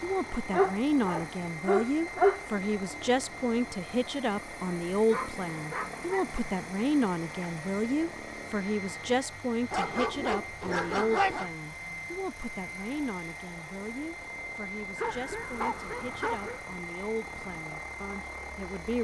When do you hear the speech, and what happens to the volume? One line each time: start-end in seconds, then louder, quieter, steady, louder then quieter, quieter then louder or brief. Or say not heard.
0.0-18.9 quieter.